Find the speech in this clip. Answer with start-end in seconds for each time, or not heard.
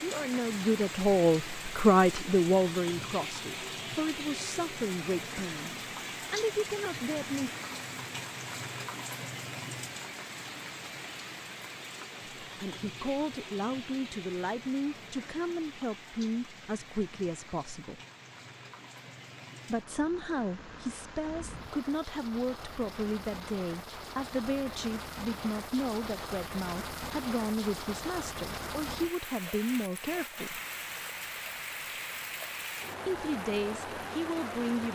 0.0-7.5, 12.4-18.0, 19.6-30.6, 33.0-34.8.